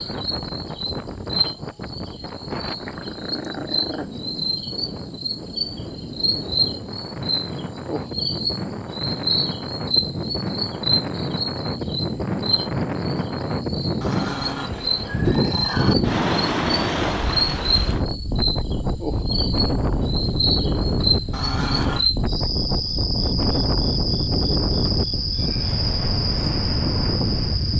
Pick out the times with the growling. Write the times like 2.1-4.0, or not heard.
2.8-4.1, 14.0-15.9, 21.3-22.1.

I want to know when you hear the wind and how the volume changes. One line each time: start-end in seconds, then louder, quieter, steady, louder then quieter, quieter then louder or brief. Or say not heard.
0.0-27.7 louder.